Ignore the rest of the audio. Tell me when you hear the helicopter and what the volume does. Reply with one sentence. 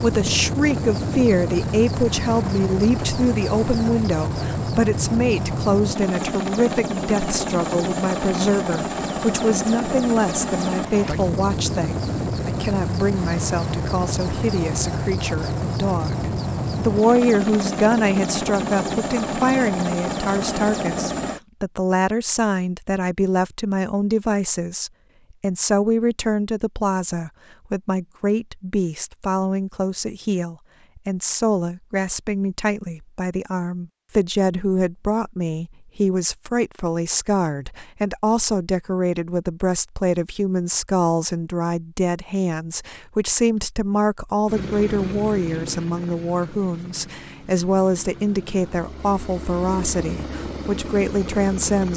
The helicopter can be heard from 0.0 to 21.4 s, at a steady volume; and from 44.5 to 51.9 s, getting quieter then louder.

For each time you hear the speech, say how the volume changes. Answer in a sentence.
The speech can be heard from 0.0 to 51.9 s, at a steady volume.